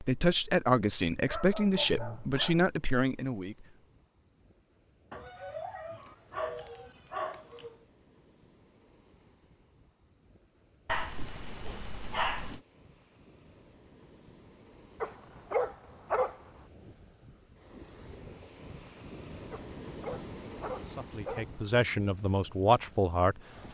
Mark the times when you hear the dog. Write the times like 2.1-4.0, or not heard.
1.1-2.7, 5.1-7.8, 10.8-12.6, 15.0-16.4, 19.5-21.5.